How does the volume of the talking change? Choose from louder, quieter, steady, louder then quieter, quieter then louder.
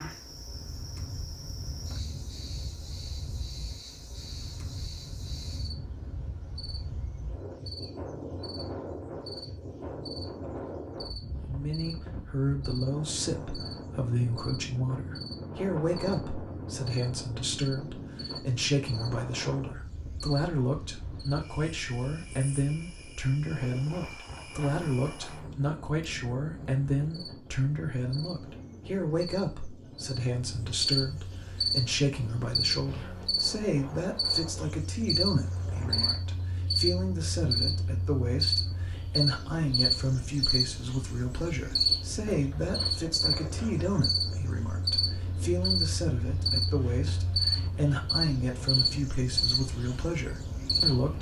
steady.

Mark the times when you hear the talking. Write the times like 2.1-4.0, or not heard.
11.4-51.1.